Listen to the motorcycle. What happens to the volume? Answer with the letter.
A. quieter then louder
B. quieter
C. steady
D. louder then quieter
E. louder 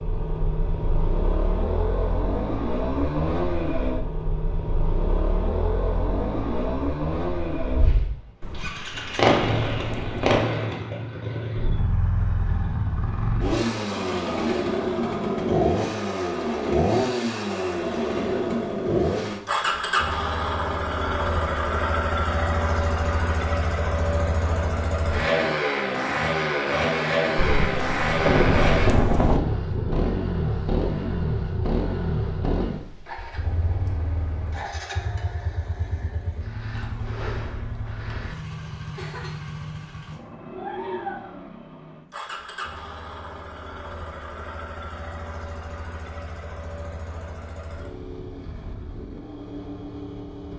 B.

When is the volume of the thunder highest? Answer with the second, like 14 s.
28 s.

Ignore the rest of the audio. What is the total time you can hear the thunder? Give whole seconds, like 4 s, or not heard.
4 s.